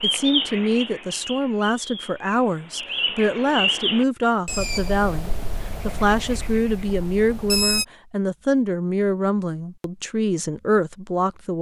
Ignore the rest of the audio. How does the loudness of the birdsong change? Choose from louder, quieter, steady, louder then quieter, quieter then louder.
louder then quieter.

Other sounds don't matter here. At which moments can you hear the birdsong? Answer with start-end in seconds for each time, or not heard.
0.0-7.8.